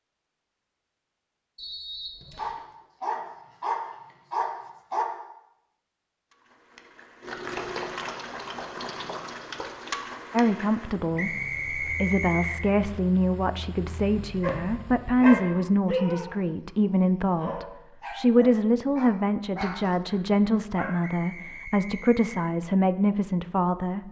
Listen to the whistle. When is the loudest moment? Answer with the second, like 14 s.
12 s.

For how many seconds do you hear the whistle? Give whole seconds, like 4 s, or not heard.
4 s.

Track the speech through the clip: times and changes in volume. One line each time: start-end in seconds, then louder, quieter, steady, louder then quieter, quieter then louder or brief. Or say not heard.
10.3-24.0 steady.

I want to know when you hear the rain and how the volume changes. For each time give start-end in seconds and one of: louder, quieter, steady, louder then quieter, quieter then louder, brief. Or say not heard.
not heard.